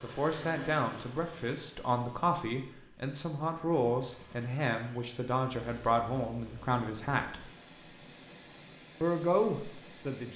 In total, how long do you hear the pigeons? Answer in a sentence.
The pigeons can't be heard in this clip.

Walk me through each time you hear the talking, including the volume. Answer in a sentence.
You can hear the talking from 0.0 to 7.5 s, at a steady volume; and briefly from 9.0 to 10.3 s.